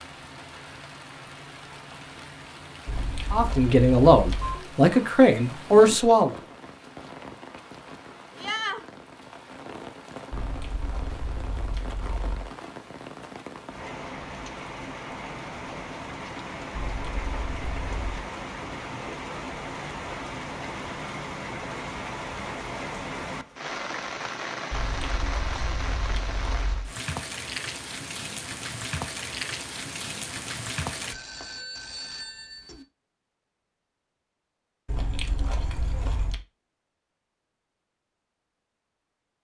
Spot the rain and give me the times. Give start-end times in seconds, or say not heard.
0.0-31.1.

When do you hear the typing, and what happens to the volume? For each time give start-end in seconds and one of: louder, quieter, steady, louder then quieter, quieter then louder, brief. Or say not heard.
not heard.